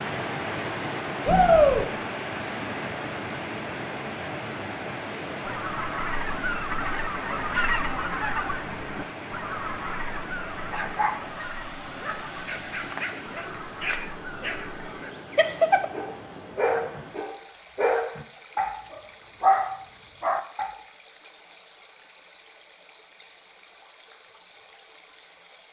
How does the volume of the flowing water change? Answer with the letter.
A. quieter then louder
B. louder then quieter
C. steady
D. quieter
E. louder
D.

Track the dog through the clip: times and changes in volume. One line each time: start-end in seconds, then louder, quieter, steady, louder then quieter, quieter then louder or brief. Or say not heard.
10.7-20.8 louder.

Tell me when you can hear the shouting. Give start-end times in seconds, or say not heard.
1.2-1.9.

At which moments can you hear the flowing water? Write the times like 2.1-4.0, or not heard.
0.0-25.6.